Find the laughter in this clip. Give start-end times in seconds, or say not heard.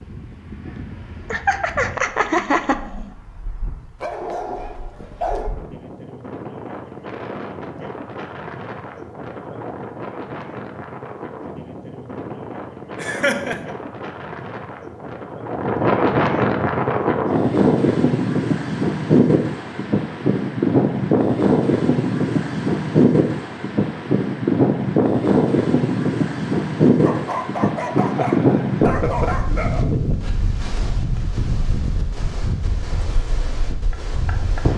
1.3-3.1, 12.9-13.8, 28.0-29.5.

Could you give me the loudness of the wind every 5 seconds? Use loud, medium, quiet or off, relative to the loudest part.
quiet, quiet, quiet, loud, loud, loud, medium.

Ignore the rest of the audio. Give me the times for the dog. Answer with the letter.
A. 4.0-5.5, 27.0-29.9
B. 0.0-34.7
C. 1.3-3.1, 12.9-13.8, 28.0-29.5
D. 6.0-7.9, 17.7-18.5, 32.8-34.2
A.